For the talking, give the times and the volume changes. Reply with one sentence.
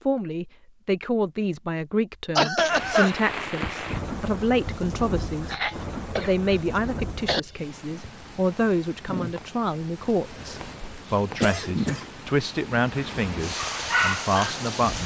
The talking can be heard from 0.1 to 15.0 s, at a steady volume.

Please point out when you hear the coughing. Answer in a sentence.
You can hear the coughing from 2.4 to 3.1 s, from 5.5 to 7.4 s and from 10.3 to 12.1 s.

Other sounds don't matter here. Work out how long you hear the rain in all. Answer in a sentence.
The rain can be heard for 12 seconds in total.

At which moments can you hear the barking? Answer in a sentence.
You can hear the barking from 13.5 to 14.7 s.